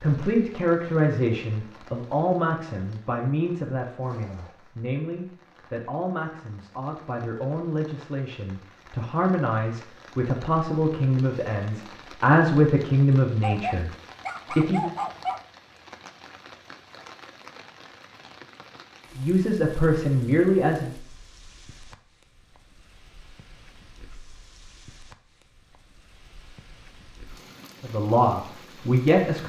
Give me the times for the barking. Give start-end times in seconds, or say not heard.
13.4-15.4.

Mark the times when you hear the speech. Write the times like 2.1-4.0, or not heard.
0.0-13.9, 14.5-14.9, 19.1-20.9, 27.8-29.4.